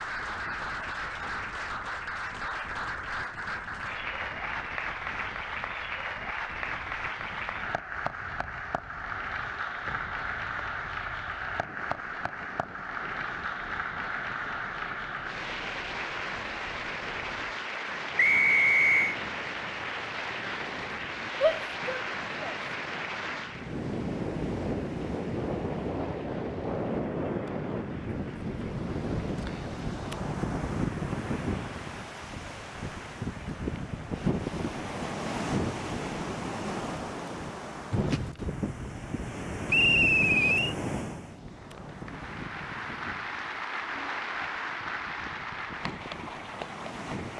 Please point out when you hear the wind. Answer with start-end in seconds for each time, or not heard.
0.0-47.3.